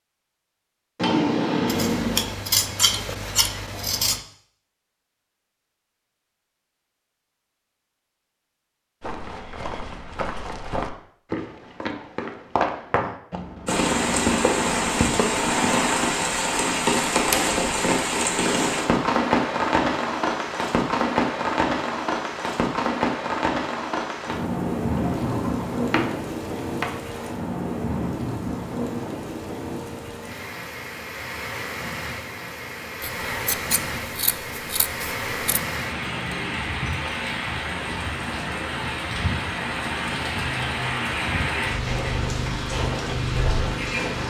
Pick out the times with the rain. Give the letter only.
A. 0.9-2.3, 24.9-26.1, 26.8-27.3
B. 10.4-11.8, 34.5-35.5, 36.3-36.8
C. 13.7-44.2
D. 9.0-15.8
C.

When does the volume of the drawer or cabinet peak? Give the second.
1 s.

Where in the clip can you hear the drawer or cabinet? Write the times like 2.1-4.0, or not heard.
0.9-2.3, 24.9-26.1, 26.8-27.3.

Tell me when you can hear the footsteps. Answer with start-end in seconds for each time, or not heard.
9.0-15.8.